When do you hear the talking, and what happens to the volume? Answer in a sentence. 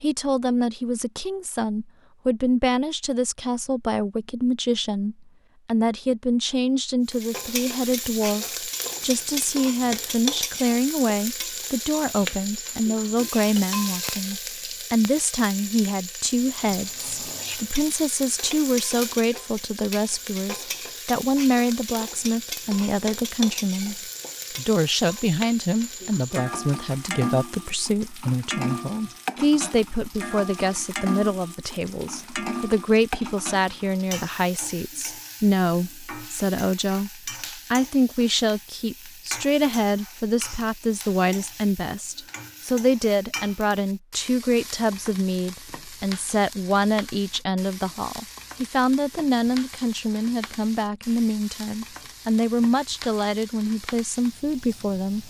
You can hear the talking from 0.0 to 55.2 s, at a steady volume.